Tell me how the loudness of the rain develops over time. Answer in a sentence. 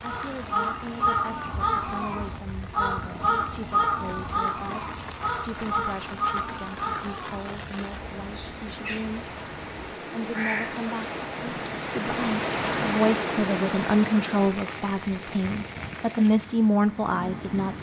The loudness of the rain goes up, then down.